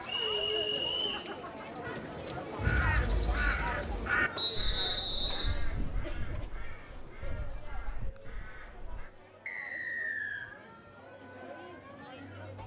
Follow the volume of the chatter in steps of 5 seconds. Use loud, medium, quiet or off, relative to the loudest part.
loud, medium, medium.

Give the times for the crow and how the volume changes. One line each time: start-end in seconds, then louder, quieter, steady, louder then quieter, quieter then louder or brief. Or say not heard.
2.5-9.1 quieter.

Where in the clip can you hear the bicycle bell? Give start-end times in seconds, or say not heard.
not heard.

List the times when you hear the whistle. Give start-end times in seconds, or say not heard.
0.1-1.2, 4.3-5.5, 9.4-10.4.